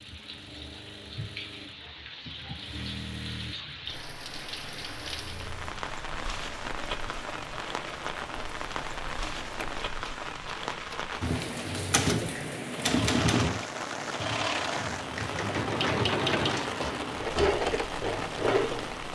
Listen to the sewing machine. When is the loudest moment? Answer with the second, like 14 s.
16 s.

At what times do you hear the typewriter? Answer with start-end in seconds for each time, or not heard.
11.2-17.9.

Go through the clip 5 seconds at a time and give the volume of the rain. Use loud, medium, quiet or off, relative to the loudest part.
medium, loud, loud, loud.